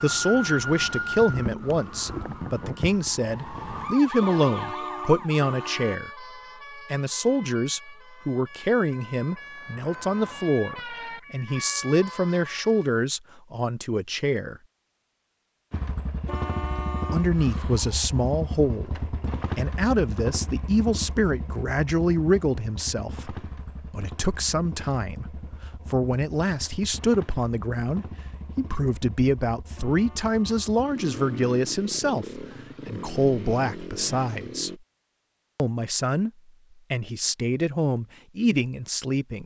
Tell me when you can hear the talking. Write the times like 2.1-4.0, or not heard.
0.0-14.6, 17.1-34.7, 35.5-36.3, 36.9-39.4.